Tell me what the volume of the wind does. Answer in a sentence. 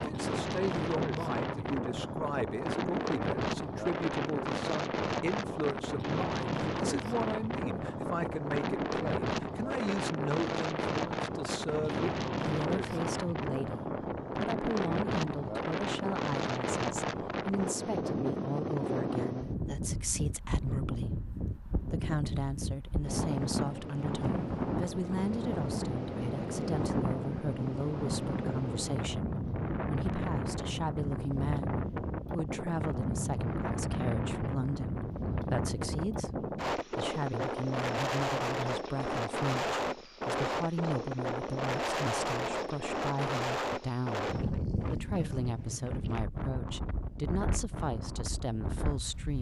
The volume of the wind stays about the same.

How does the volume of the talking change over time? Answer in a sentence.
The loudness of the talking stays about the same.